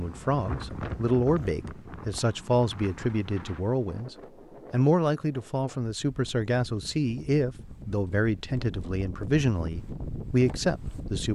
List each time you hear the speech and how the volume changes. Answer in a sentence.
The speech can be heard from 0.0 to 11.3 s, at a steady volume.